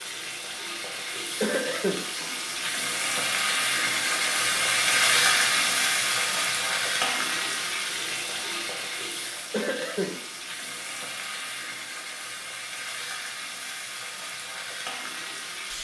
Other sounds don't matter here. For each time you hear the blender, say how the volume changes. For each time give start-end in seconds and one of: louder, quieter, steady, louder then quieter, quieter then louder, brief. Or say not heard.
not heard.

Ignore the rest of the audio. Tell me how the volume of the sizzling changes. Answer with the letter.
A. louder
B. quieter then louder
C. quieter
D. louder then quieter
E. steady
D.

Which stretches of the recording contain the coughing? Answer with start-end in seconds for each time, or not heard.
1.4-2.0, 9.5-10.2.